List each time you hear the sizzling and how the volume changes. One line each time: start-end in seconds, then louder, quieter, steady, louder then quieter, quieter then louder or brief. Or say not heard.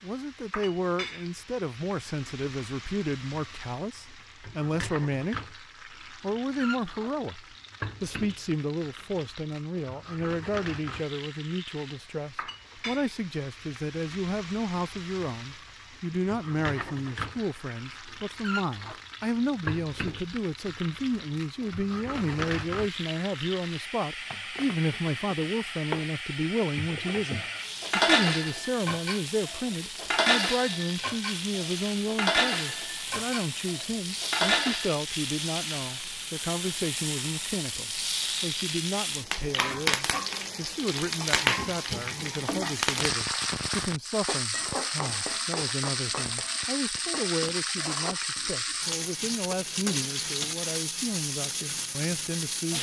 0.0-52.7 louder.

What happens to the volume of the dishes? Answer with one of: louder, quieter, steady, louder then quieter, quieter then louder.
quieter then louder.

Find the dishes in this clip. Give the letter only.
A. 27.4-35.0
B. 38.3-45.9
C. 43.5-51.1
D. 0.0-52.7
A.